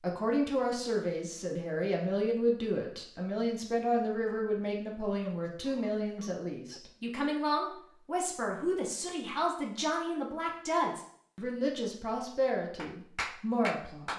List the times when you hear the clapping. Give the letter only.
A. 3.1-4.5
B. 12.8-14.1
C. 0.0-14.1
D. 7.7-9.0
B.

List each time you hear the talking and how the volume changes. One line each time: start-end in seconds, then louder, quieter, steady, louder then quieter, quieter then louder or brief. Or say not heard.
0.0-14.1 steady.